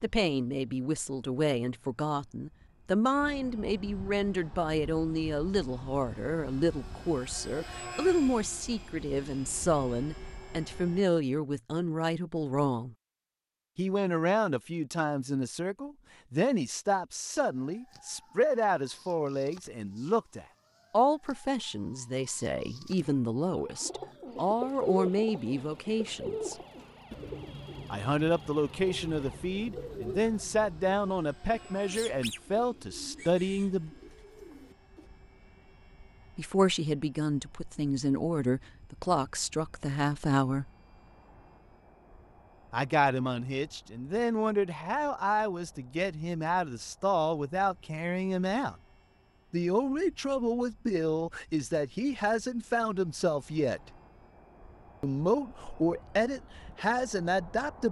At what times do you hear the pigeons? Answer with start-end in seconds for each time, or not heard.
23.5-35.0.